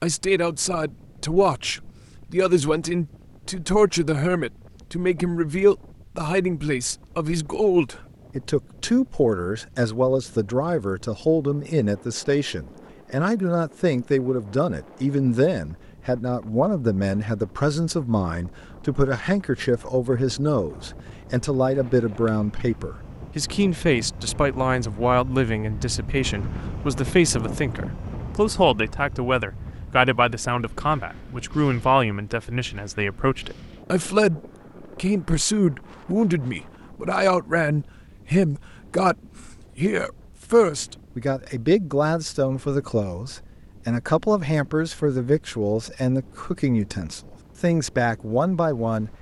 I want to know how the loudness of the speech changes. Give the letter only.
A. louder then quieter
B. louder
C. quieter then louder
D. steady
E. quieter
D.